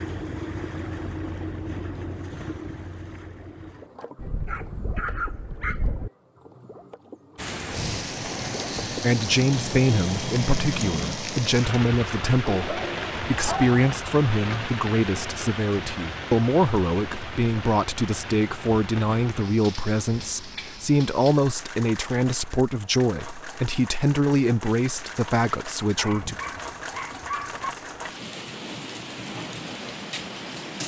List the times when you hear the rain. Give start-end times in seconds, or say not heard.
7.3-30.8.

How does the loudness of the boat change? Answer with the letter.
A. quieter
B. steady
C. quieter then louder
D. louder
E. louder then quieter
C.